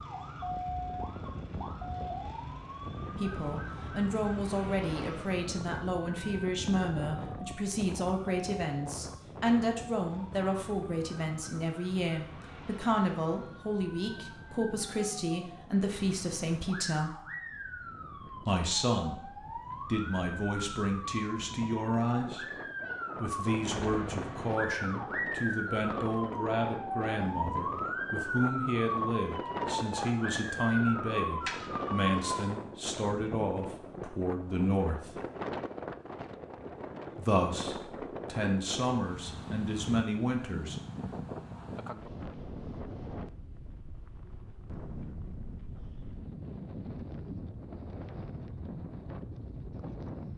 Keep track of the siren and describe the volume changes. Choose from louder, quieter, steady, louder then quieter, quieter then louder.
quieter then louder.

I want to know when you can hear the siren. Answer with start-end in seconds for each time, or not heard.
0.0-32.5.